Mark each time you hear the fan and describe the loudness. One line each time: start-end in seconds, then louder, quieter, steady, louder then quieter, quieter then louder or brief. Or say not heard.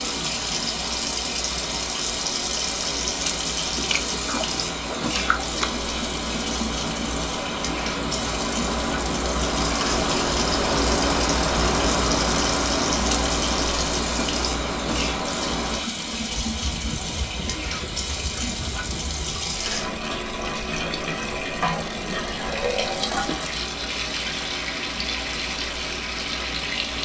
0.0-26.9 louder then quieter.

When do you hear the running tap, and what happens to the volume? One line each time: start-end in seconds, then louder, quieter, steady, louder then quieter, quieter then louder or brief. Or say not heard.
0.0-26.9 steady.